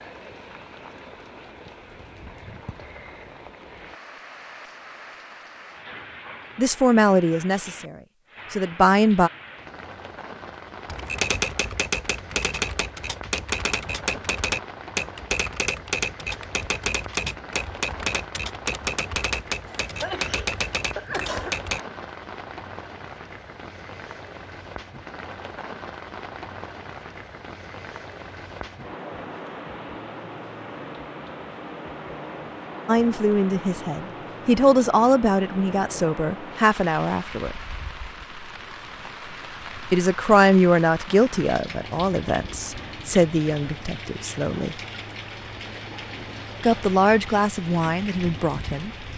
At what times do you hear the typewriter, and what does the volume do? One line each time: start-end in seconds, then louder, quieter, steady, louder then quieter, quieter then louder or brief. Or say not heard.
10.8-21.8 steady.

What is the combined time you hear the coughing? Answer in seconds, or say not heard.
2 s.